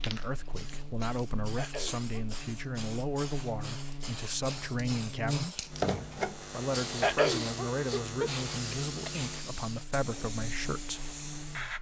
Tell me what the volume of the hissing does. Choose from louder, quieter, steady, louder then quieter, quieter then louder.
louder then quieter.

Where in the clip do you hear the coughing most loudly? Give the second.
7 s.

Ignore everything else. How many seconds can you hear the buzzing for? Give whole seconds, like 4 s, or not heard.
12 s.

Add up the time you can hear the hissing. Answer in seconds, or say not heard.
12 s.